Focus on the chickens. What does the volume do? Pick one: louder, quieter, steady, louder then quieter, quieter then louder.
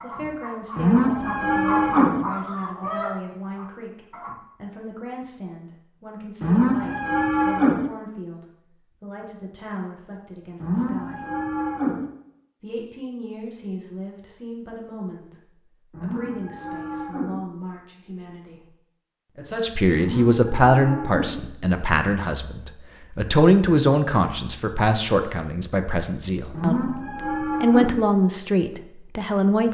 louder then quieter.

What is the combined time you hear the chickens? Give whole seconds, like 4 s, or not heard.
4 s.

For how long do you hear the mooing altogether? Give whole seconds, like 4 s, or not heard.
9 s.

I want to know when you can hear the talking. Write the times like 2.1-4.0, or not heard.
0.0-11.2, 12.6-18.6, 19.3-29.7.